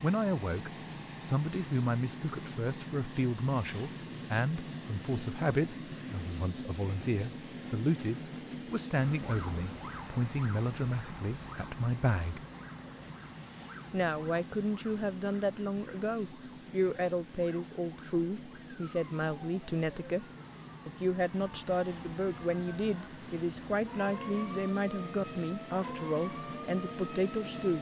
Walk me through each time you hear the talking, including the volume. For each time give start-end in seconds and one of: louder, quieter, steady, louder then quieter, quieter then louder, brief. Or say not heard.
0.0-12.4 steady
13.9-20.2 steady
20.9-27.7 steady.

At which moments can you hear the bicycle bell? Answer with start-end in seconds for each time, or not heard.
not heard.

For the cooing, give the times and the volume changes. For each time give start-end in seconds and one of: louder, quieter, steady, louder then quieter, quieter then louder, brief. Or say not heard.
not heard.